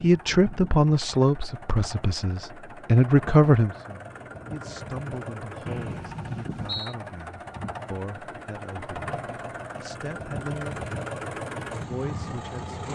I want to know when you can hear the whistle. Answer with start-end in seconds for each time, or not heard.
5.7-7.0.